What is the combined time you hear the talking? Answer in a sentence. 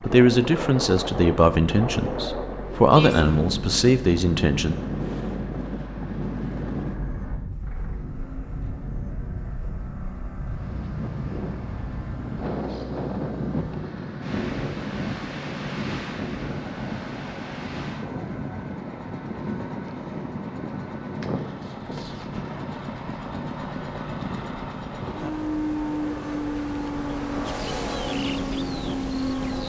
The talking can be heard for 5 seconds in total.